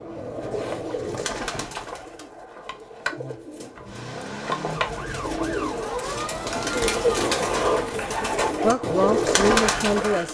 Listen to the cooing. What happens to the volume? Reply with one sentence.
The volume of the cooing goes down, then up.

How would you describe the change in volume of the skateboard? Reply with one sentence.
The volume of the skateboard goes up.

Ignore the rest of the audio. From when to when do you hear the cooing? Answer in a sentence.
The cooing can be heard from 0.0 to 10.2 s.